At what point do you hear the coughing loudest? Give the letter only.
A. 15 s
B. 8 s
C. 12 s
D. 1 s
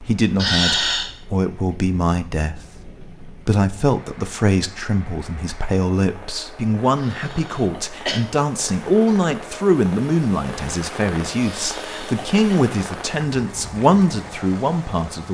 D.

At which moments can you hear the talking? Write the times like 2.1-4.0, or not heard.
0.0-15.2.